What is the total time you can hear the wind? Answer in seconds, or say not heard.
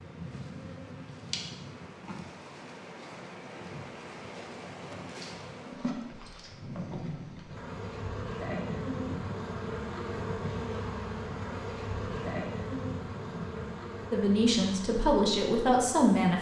14 s.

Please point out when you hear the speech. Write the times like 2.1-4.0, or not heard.
14.1-16.3.